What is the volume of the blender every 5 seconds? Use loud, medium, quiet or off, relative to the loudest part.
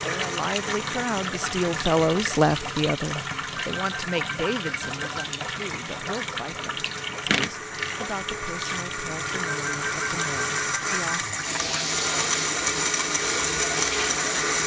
medium, medium, loud.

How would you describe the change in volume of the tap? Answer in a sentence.
The volume of the tap stays about the same.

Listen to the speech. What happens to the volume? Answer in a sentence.
The volume of the speech goes down.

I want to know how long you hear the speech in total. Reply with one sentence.
The speech can be heard for 11 seconds in total.